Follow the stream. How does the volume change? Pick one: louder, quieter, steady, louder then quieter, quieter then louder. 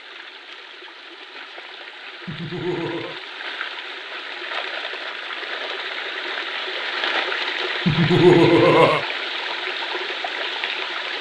louder.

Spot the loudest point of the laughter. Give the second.
8 s.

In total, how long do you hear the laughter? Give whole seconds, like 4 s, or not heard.
2 s.